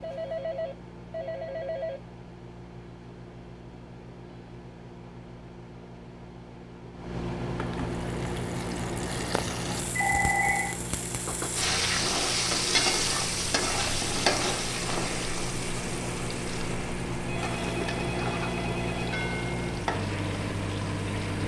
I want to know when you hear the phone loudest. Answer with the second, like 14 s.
10 s.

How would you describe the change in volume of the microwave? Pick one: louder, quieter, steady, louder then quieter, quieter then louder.
louder.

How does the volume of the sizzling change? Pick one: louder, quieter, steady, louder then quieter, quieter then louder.
louder then quieter.